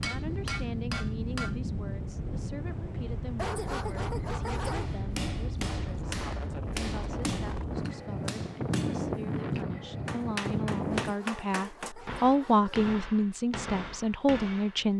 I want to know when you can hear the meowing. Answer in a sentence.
The meowing can't be heard in this clip.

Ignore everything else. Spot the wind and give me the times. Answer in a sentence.
The wind can be heard from 0.0 to 11.2 s.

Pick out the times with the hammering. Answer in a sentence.
You can hear the hammering from 0.0 to 1.6 s and from 4.7 to 14.9 s.